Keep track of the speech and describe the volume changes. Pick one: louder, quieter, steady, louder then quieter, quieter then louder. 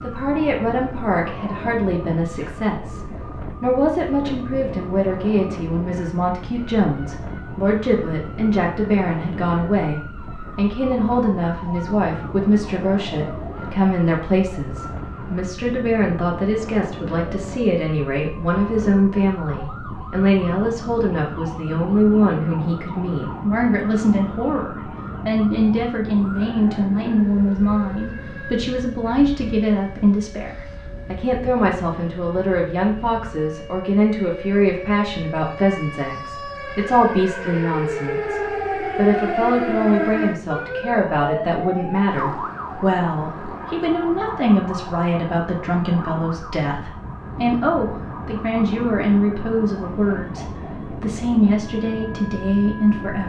steady.